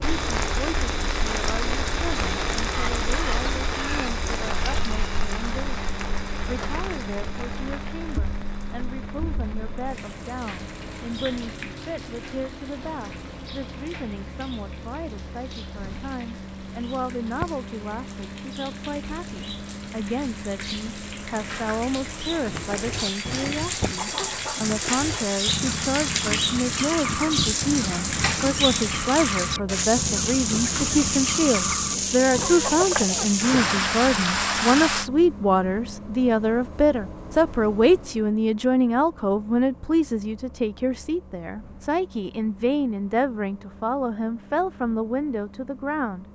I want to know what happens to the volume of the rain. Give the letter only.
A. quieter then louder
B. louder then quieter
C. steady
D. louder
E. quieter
A.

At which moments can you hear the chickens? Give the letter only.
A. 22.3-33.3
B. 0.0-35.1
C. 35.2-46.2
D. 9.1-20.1
A.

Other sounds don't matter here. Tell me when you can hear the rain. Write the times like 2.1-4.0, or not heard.
0.0-35.1.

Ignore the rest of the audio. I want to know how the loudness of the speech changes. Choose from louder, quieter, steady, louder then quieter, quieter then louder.
louder.